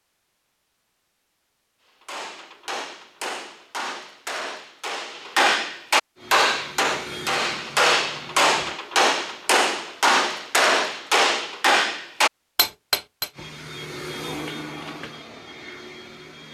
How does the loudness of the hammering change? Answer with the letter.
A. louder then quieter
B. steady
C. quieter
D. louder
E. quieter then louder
D.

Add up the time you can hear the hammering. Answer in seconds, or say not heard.
11 s.